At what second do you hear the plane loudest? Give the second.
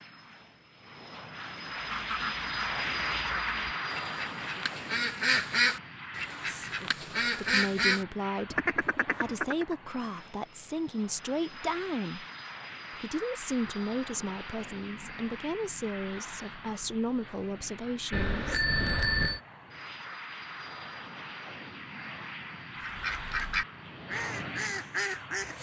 3 s.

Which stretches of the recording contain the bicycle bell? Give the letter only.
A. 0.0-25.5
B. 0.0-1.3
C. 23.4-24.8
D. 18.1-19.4
D.